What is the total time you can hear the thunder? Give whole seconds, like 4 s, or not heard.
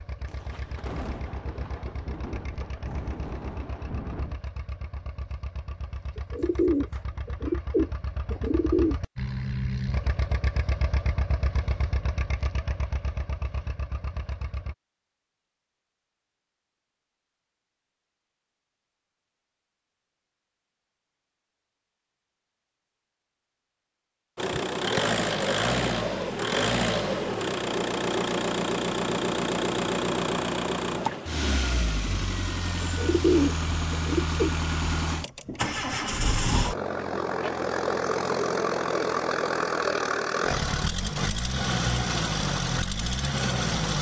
4 s.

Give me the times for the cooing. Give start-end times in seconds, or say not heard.
6.2-8.9, 32.8-34.5.